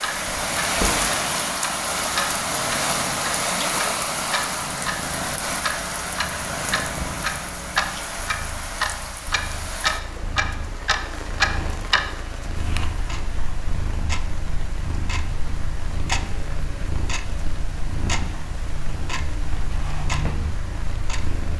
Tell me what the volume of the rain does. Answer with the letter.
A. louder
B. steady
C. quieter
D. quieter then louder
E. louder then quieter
C.